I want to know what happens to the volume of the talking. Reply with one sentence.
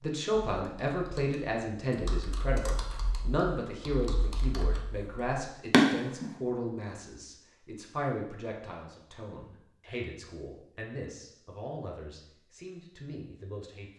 The loudness of the talking goes down.